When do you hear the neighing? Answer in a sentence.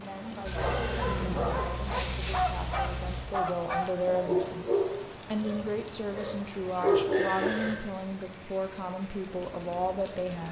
You can hear the neighing from 0.5 to 3.2 s and from 7.1 to 7.9 s.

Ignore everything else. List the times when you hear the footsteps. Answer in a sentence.
You can't hear the footsteps here.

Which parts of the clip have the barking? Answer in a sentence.
You can hear the barking from 0.6 to 7.5 s.